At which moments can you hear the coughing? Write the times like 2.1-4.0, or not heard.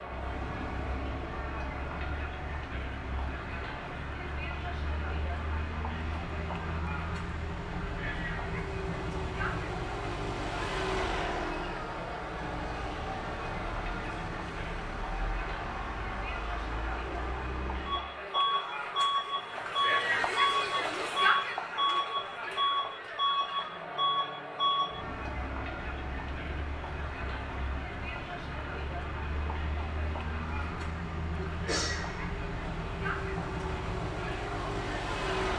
31.4-32.0.